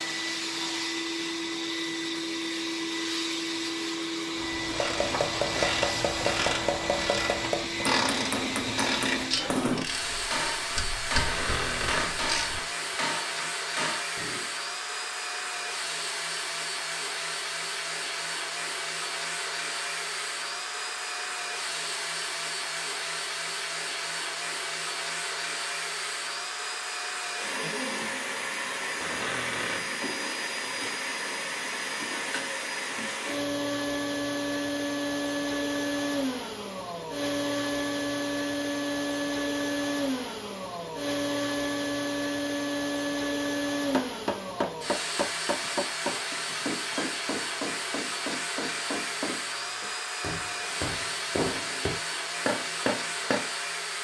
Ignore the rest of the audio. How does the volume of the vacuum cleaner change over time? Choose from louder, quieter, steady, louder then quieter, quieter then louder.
steady.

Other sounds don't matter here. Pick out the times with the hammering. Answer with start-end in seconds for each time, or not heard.
4.6-14.4, 43.9-53.5.